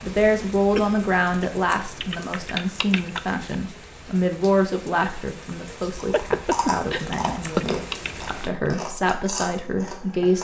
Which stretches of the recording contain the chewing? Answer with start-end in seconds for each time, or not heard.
6.0-10.3.